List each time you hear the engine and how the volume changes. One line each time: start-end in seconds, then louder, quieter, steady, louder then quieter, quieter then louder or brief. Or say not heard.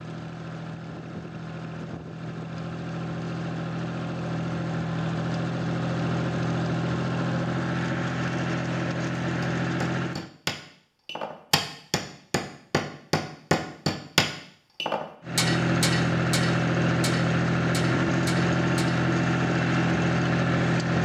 0.0-10.3 louder
15.2-20.9 steady.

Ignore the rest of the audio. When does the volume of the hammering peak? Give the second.
14 s.